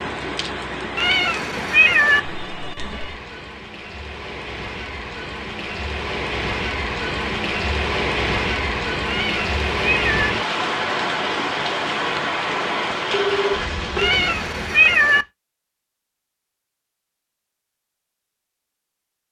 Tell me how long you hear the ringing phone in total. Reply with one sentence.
You can hear the ringing phone for 2 seconds altogether.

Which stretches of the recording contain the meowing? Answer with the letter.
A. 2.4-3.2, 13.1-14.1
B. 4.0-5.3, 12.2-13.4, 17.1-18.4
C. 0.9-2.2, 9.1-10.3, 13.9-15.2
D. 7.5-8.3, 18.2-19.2
C.